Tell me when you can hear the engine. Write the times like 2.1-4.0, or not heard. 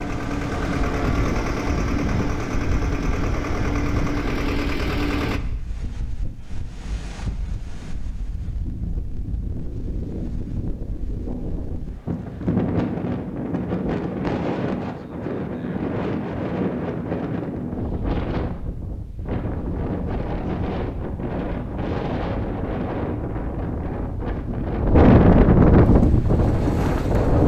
0.0-5.4, 25.8-27.4.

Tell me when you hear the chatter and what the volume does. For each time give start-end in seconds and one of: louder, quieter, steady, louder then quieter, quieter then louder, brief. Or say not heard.
not heard.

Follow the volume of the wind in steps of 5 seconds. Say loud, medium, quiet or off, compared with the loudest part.
quiet, quiet, medium, medium, medium, loud.